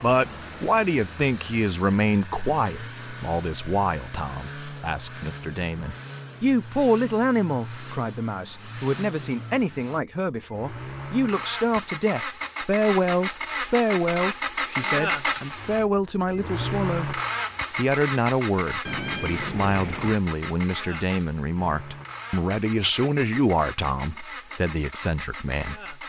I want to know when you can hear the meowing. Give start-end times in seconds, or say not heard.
18.9-20.1.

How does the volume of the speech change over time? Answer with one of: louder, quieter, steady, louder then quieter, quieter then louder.
steady.